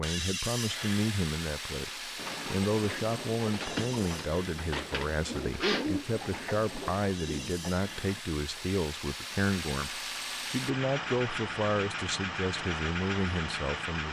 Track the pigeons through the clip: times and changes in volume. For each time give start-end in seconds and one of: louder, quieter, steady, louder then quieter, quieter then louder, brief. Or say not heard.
2.1-8.2 louder then quieter.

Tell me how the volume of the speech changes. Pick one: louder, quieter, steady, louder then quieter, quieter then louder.
steady.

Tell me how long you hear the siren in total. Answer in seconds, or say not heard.
not heard.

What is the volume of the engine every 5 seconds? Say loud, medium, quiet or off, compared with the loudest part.
loud, medium, loud.